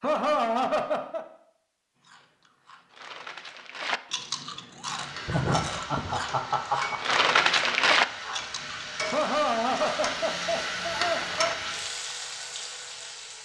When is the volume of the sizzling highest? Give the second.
11 s.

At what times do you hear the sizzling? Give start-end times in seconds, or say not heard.
4.8-13.4.